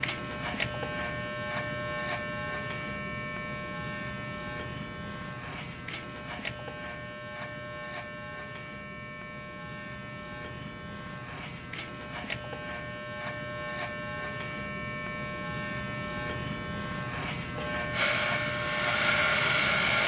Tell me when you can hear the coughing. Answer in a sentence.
The coughing can't be heard in this clip.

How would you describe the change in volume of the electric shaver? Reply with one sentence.
The volume of the electric shaver goes down, then up.